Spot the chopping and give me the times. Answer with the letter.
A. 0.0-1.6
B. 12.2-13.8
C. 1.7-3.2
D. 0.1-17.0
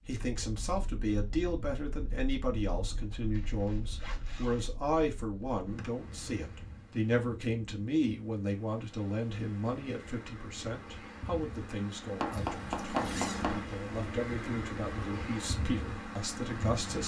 B.